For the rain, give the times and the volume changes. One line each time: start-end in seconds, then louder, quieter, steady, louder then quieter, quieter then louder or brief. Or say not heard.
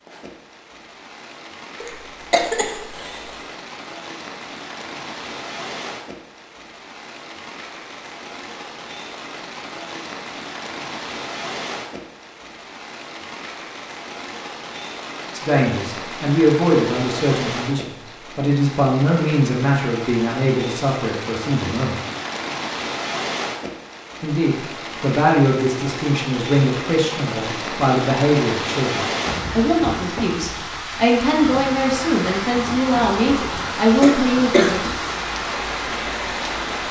0.0-36.8 louder.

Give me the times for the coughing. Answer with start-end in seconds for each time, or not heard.
1.8-3.2, 34.0-34.8.